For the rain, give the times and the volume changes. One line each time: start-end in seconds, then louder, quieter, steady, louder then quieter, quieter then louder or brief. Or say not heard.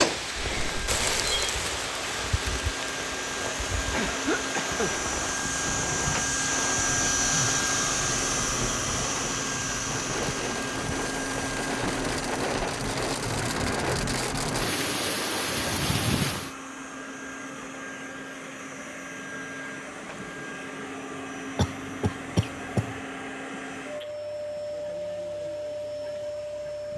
0.0-16.6 quieter then louder.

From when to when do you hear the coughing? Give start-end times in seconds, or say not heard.
3.9-4.9, 21.6-23.0.